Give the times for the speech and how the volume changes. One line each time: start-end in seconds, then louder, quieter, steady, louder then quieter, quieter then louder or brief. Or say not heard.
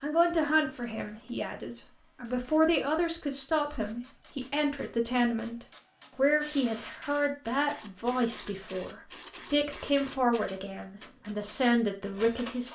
0.0-12.7 steady.